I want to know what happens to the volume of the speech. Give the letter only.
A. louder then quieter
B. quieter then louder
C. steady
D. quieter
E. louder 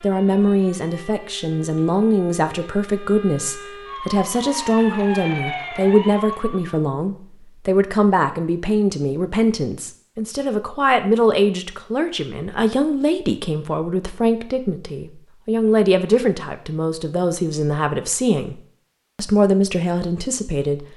C.